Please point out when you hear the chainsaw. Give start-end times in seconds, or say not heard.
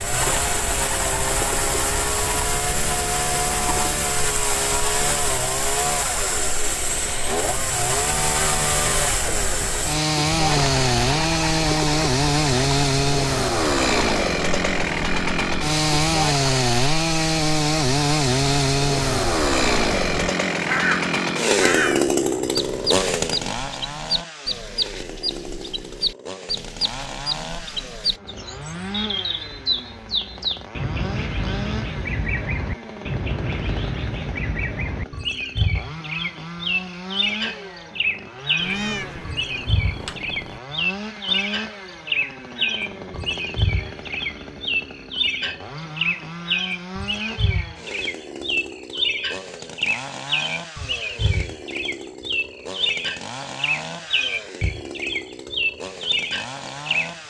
0.0-57.2.